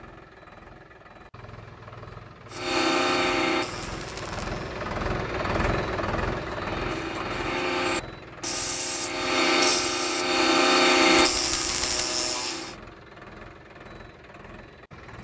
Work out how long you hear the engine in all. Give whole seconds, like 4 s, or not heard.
15 s.